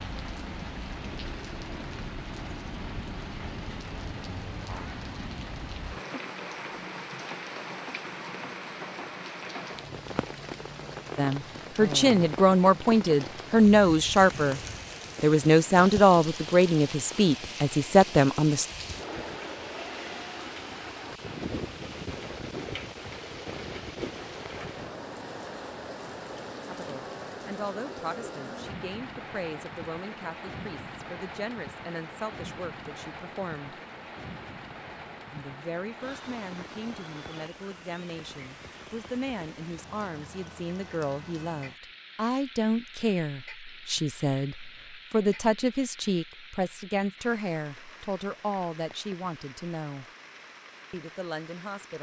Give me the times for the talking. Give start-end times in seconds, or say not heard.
11.2-14.6, 15.2-18.6, 26.6-33.8, 35.3-50.0, 50.9-51.9.